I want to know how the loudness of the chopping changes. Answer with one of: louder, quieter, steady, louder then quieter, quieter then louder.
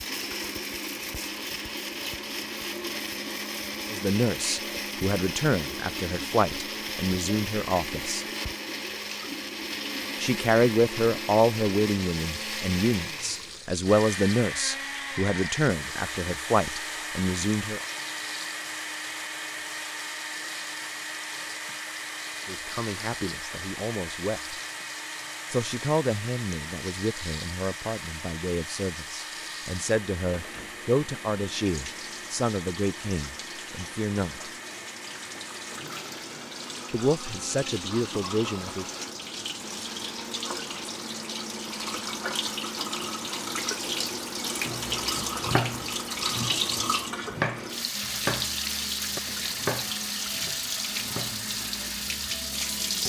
quieter.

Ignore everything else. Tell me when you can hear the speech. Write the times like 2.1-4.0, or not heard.
3.9-8.2, 10.2-17.8, 22.4-24.6, 25.5-34.5, 36.9-38.9.